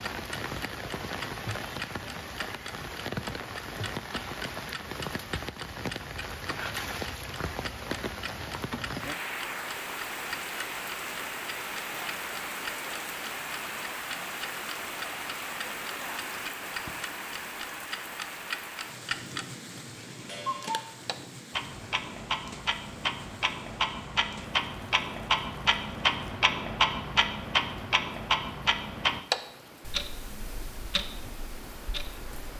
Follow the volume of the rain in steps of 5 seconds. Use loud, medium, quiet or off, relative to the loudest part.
loud, loud, loud, loud, medium, quiet, medium.